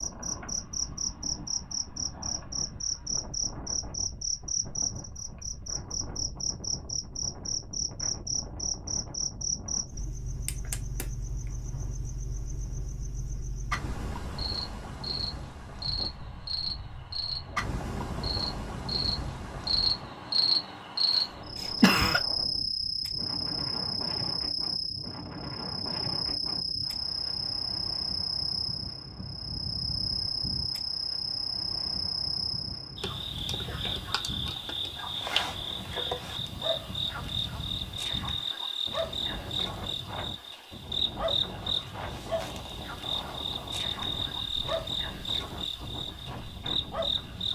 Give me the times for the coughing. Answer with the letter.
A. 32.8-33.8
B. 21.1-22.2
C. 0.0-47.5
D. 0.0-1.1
B.